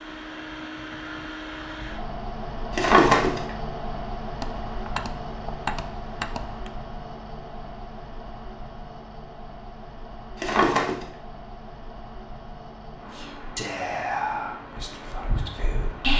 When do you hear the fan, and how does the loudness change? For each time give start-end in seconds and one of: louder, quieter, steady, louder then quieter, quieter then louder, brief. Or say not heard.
0.0-16.1 quieter.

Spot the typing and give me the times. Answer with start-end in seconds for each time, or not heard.
4.4-6.7.